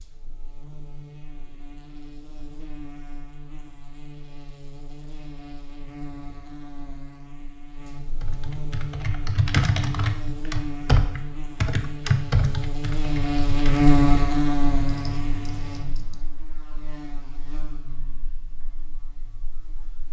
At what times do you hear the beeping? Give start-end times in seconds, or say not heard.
not heard.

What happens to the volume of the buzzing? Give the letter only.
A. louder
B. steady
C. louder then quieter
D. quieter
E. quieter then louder
C.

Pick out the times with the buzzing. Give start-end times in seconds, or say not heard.
0.0-20.0.